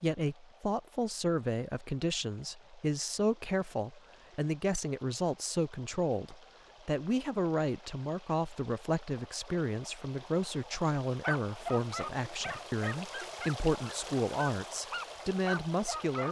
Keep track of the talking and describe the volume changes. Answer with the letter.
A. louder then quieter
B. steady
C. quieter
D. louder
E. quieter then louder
B.